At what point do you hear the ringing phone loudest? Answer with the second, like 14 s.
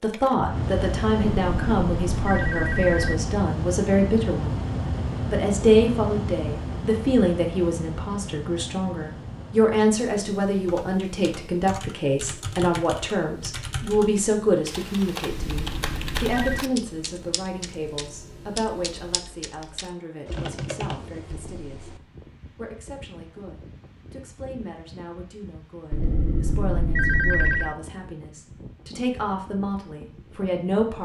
27 s.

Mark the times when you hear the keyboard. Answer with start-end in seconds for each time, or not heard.
10.7-22.0.